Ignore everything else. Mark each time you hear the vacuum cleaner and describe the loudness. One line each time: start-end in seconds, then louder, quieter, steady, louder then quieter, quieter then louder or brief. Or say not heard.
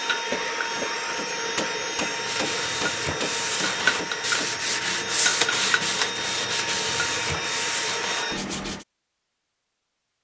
0.0-8.4 steady.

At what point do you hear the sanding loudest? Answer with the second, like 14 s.
5 s.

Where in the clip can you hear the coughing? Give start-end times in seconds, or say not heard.
0.3-1.1.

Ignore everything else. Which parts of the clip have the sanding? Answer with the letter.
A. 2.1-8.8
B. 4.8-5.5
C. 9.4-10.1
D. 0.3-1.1
A.